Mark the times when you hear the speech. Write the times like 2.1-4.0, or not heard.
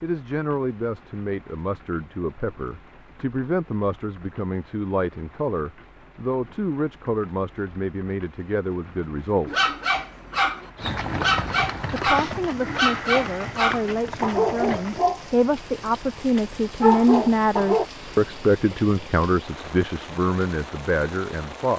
0.0-9.7, 11.9-21.7.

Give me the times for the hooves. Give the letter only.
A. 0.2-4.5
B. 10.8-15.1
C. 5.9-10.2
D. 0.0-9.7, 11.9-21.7
B.